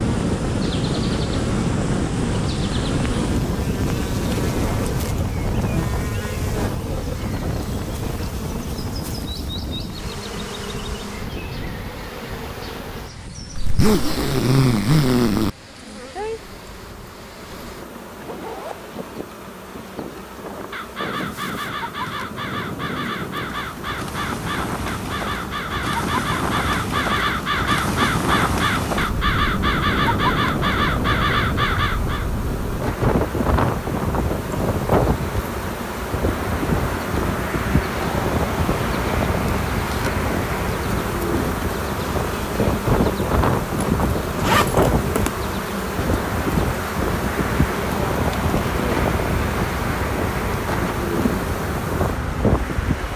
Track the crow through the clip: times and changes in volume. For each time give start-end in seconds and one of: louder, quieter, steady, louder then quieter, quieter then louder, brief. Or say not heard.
20.7-32.3 louder.